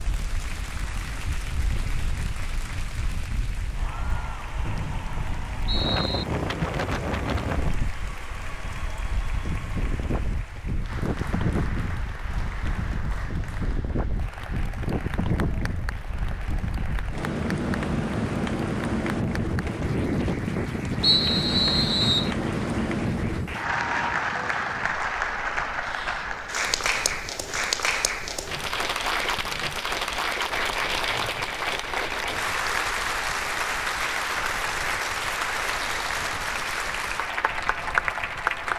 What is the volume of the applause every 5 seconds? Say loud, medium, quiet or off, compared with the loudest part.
quiet, quiet, quiet, quiet, medium, loud, loud, loud.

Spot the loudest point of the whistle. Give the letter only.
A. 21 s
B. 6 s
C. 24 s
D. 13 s
A.